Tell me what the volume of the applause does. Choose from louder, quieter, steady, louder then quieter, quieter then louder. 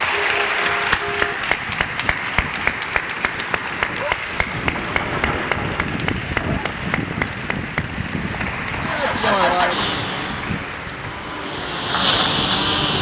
quieter.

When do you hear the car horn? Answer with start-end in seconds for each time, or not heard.
0.1-1.4.